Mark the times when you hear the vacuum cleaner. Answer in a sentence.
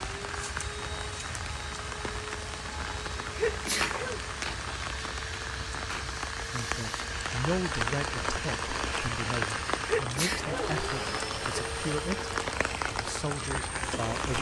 The vacuum cleaner can be heard from 0.0 to 14.3 s.